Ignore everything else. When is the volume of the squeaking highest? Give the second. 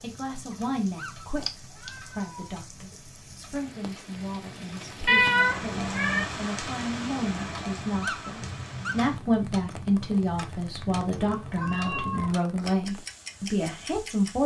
8 s.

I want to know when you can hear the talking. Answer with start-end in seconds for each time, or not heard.
0.0-14.4.